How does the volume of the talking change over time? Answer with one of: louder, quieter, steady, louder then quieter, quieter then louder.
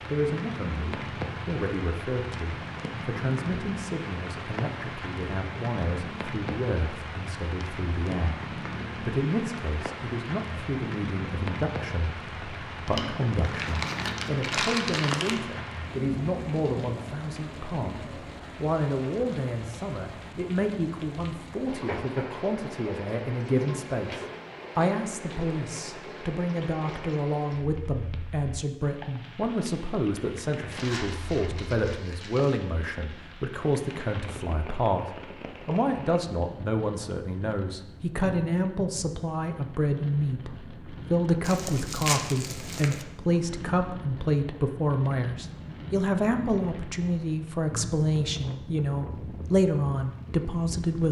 louder.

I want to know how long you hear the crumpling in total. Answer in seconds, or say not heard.
6 s.